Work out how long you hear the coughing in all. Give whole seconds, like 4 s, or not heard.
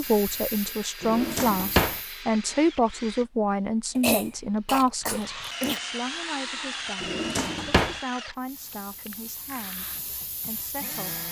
2 s.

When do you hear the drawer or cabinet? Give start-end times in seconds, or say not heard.
1.0-2.0, 7.0-8.0.